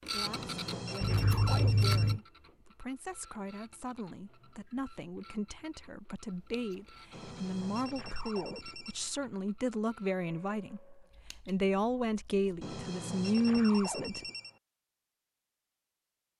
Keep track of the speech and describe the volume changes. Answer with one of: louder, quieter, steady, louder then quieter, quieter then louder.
louder.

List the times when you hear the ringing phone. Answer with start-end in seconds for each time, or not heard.
0.2-2.2, 7.1-9.1, 12.6-14.6.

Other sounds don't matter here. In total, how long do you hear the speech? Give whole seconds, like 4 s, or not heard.
14 s.